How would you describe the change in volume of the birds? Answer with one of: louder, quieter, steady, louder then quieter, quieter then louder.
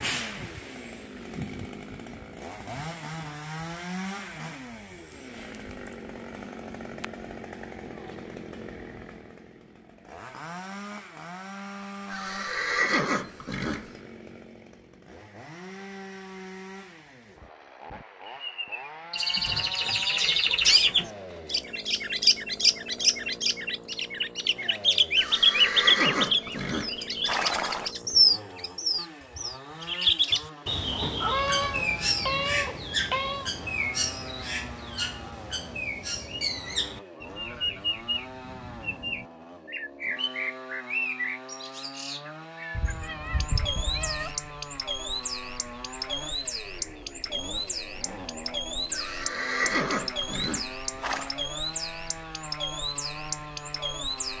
quieter.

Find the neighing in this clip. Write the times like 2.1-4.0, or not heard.
12.1-13.9, 25.1-27.9, 48.9-51.4.